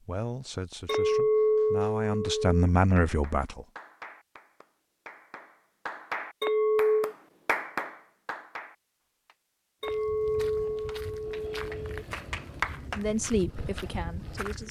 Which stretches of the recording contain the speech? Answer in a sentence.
The speech can be heard from 0.0 to 3.6 s and from 12.9 to 14.6 s.